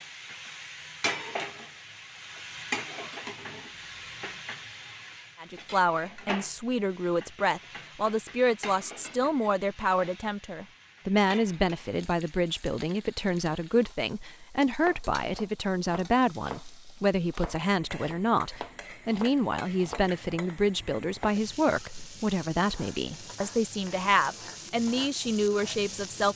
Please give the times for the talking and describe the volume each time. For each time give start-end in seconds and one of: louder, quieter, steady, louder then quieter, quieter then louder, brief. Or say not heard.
5.4-26.3 steady.